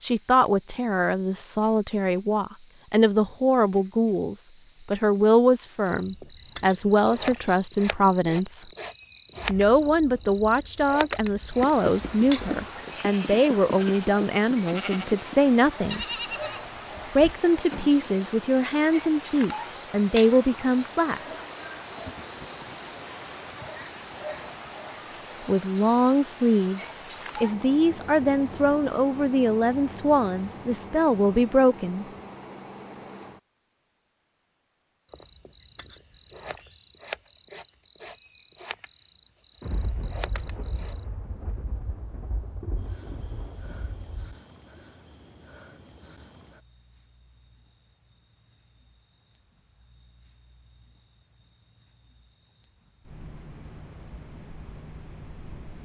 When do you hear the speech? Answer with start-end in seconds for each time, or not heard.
0.0-8.7, 9.4-16.1, 17.1-21.4, 25.4-32.0.